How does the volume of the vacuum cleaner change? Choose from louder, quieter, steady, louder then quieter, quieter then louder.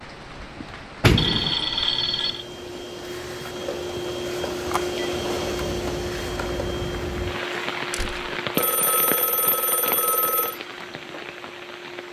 louder then quieter.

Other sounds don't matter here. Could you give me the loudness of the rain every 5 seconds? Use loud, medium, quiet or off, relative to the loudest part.
medium, loud, medium.